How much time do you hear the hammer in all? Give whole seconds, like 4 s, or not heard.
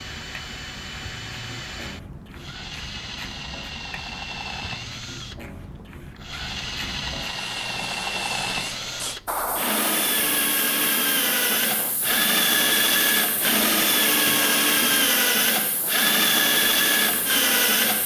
not heard.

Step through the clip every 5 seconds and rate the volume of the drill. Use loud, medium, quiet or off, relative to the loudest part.
quiet, medium, loud, loud.